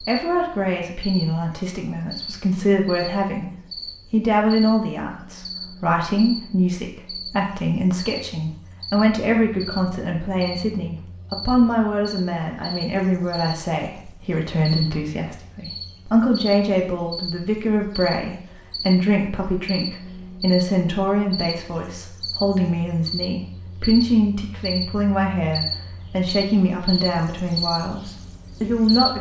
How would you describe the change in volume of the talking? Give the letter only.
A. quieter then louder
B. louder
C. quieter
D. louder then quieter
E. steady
E.